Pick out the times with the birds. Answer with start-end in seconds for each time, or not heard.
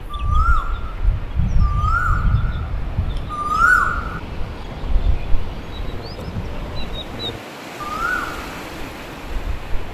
0.0-9.9.